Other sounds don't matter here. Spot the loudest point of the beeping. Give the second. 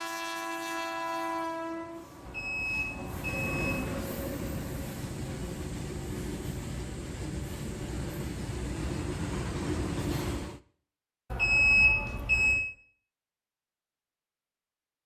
12 s.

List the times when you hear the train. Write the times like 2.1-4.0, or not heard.
0.0-10.6.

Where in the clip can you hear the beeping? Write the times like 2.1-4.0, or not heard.
2.2-4.0, 11.3-12.6.